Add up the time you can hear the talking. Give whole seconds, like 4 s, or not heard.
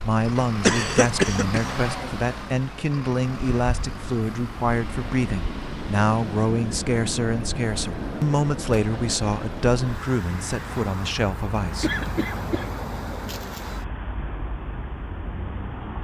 12 s.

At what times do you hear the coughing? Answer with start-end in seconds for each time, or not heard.
0.7-1.8, 11.8-13.7.